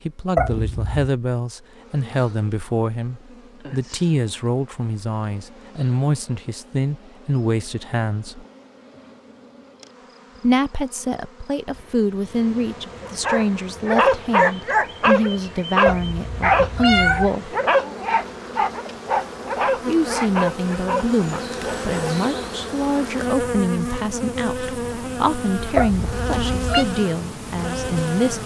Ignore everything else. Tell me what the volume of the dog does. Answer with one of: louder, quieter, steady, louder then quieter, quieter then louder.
quieter.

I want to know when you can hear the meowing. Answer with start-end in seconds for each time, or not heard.
0.3-1.1, 15.8-17.3, 25.8-26.9.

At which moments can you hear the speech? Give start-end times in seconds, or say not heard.
0.1-8.4, 10.4-17.6, 19.9-28.4.